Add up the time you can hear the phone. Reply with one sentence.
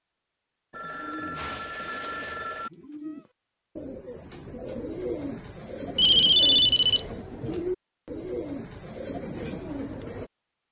You can hear the phone for 4 seconds altogether.